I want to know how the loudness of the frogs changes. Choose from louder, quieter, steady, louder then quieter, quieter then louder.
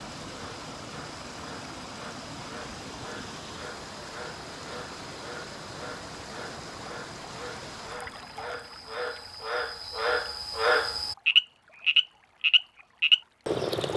louder.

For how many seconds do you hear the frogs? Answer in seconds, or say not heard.
14 s.